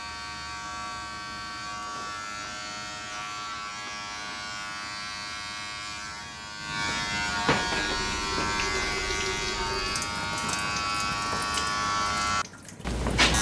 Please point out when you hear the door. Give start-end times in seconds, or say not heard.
7.2-8.0.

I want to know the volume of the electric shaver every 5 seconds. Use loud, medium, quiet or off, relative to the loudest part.
medium, loud, loud.